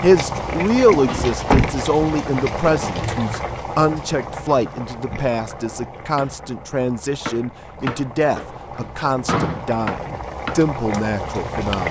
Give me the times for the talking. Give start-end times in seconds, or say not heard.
0.0-11.8.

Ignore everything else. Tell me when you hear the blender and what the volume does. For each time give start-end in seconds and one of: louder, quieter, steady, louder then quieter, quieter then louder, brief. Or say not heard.
not heard.